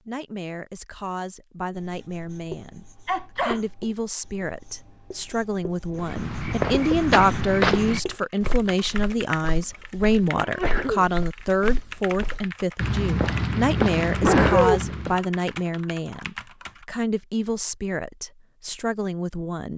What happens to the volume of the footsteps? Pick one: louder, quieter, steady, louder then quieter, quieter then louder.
quieter then louder.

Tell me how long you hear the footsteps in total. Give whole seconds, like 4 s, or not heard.
9 s.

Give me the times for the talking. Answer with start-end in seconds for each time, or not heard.
0.1-19.7.